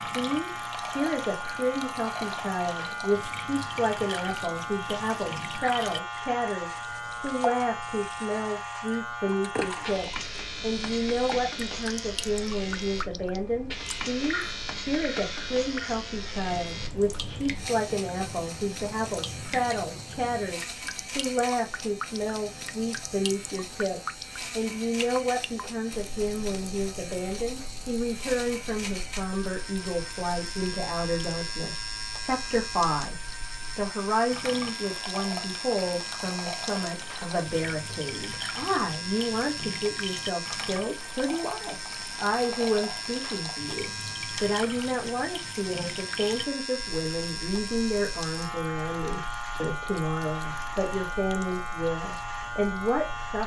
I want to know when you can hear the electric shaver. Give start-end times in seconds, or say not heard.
0.0-53.4.